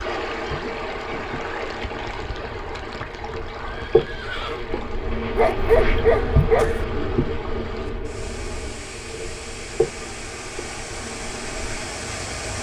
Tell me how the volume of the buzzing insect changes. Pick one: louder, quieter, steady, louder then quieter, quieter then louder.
louder then quieter.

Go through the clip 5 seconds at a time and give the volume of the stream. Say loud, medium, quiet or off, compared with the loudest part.
loud, medium, loud.